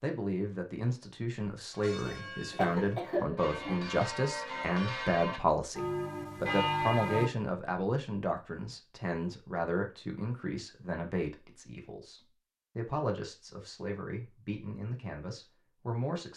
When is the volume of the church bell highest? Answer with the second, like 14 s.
7 s.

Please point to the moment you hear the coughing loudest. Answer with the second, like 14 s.
3 s.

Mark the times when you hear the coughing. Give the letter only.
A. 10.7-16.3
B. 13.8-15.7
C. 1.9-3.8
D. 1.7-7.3
C.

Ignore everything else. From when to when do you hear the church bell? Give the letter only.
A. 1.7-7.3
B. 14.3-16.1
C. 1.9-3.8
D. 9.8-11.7
A.